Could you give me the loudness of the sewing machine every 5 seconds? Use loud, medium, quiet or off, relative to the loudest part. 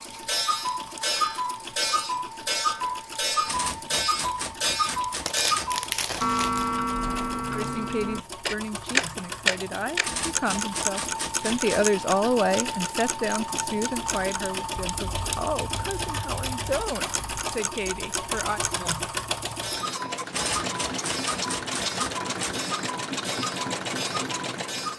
medium, medium, loud, loud, loud.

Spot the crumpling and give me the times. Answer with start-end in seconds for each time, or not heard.
5.2-6.8.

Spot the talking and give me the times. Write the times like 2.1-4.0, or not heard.
7.5-18.6.